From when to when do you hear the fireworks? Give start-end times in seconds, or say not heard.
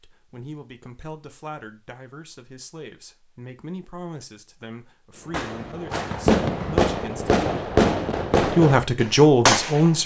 5.3-9.9.